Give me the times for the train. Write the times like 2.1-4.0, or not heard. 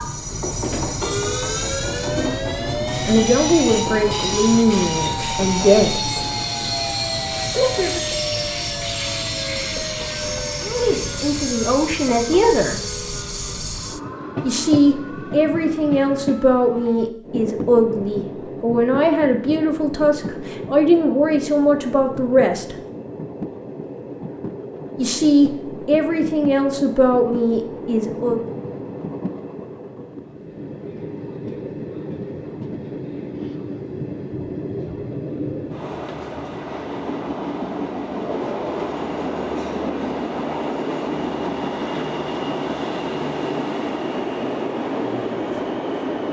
0.0-46.2.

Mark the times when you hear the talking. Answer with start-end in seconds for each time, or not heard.
3.0-6.2, 7.5-8.0, 10.6-12.8, 14.4-22.8, 24.9-28.4.